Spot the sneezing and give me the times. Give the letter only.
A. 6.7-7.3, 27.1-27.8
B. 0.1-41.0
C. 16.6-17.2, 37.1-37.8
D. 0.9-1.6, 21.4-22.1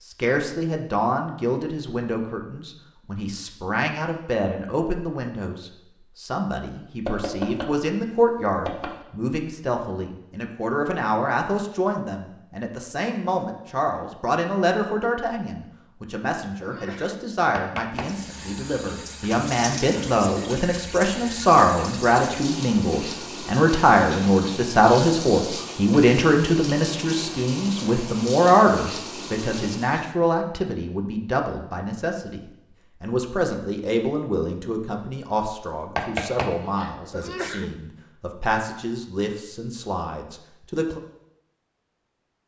C.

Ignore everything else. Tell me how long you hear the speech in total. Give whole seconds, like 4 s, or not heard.
41 s.